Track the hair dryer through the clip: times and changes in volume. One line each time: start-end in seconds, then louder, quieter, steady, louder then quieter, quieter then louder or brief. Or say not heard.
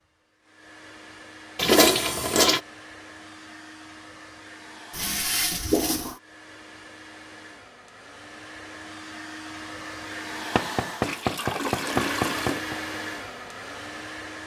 0.0-14.4 louder.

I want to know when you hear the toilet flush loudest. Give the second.
2 s.